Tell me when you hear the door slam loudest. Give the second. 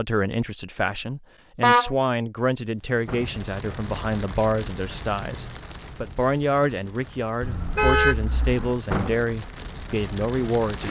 9 s.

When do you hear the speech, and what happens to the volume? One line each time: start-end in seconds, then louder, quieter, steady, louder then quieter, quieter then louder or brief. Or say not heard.
0.0-10.8 steady.